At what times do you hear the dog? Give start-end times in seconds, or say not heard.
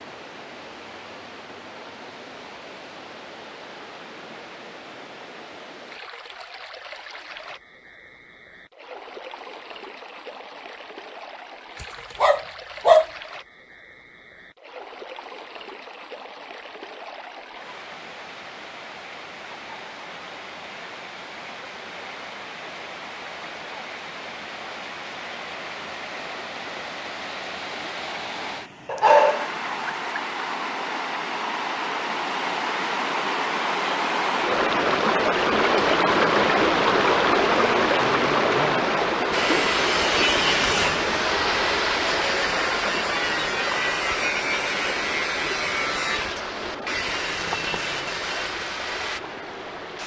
11.8-13.1, 28.9-30.2.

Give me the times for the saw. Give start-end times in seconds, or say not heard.
39.3-49.2.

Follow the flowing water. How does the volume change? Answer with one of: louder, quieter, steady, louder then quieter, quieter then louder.
louder then quieter.